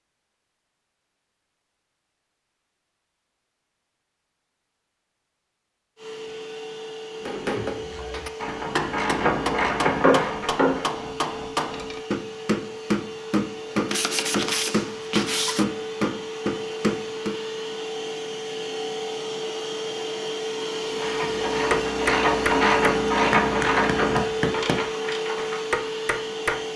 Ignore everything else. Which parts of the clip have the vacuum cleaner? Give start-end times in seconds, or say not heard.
6.0-26.7.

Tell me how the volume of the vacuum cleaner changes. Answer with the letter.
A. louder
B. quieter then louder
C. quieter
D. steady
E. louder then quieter
A.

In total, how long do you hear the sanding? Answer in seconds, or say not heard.
2 s.